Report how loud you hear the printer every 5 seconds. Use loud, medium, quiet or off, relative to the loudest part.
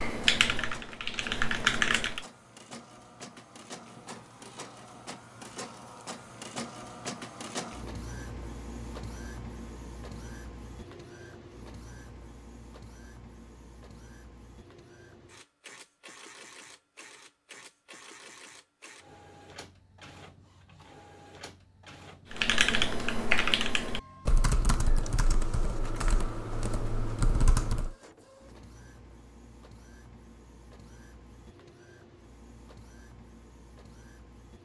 medium, loud, medium, medium, medium, medium, quiet.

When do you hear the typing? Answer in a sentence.
The typing can be heard from 0.0 to 2.2 s and from 22.3 to 27.9 s.